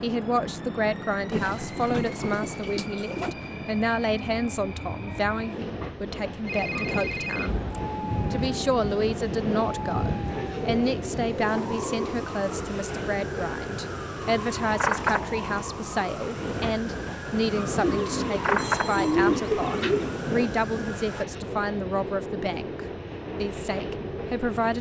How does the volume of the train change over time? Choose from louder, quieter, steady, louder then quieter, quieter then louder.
steady.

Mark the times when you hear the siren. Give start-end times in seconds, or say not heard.
7.5-21.2.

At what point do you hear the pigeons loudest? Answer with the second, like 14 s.
19 s.